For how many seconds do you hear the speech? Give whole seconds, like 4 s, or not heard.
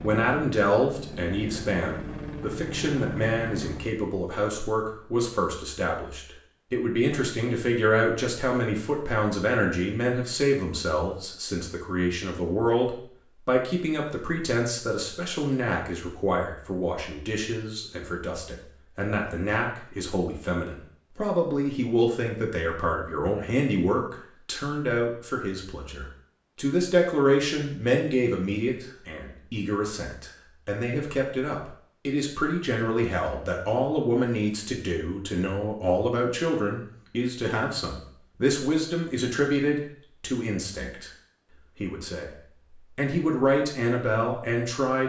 44 s.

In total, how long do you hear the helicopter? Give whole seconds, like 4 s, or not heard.
4 s.